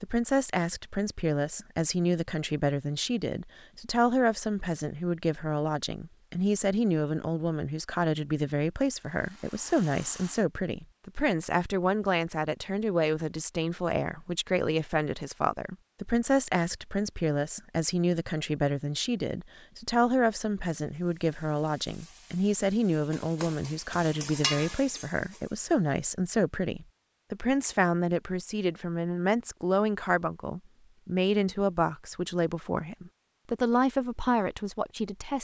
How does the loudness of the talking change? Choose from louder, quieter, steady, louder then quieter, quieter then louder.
steady.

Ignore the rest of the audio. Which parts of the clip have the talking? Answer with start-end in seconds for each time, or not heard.
0.0-35.3.